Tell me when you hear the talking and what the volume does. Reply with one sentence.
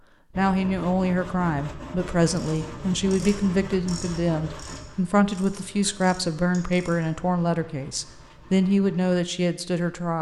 You can hear the talking from 0.3 to 10.1 s, at a steady volume.